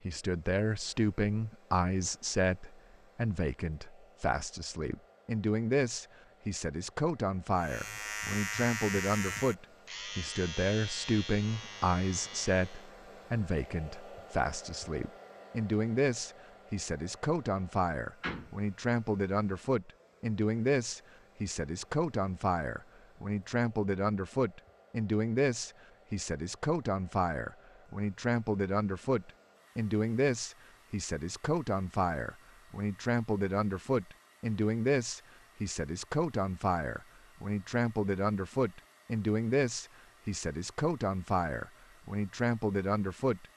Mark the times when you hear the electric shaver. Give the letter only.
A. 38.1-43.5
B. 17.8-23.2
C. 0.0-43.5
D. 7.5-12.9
D.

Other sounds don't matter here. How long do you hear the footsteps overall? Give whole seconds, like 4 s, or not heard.
not heard.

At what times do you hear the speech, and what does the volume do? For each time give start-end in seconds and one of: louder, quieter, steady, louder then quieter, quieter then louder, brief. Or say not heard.
0.0-43.5 steady.